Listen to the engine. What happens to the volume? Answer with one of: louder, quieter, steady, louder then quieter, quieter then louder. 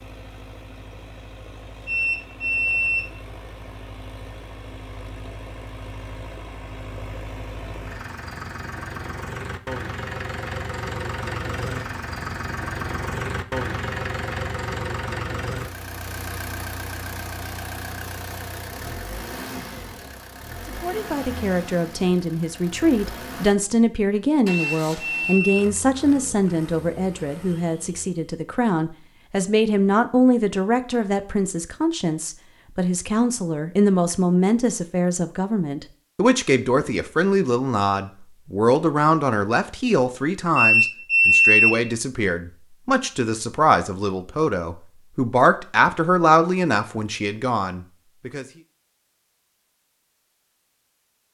louder then quieter.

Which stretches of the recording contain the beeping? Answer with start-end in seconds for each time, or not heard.
1.9-3.0, 24.5-25.6, 40.5-41.7.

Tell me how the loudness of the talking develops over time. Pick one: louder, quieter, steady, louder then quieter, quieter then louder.
steady.